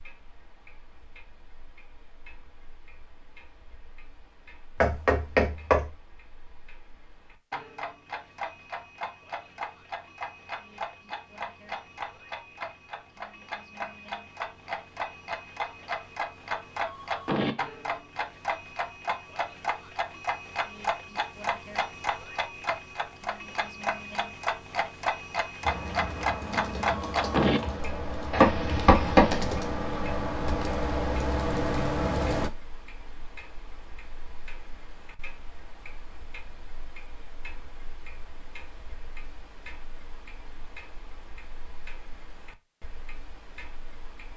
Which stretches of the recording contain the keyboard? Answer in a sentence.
The keyboard can be heard from 25.6 to 32.5 s.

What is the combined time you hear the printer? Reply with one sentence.
You can't hear the printer here.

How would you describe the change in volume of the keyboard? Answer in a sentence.
The volume of the keyboard goes up.